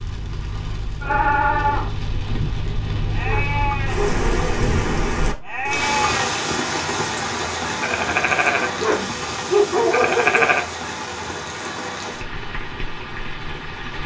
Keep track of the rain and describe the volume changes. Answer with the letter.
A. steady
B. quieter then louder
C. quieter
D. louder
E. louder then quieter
E.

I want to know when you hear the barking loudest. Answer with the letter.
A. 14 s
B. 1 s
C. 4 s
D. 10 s
D.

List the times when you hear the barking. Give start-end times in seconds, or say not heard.
3.2-4.7, 8.8-10.5.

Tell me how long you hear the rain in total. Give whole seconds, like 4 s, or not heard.
14 s.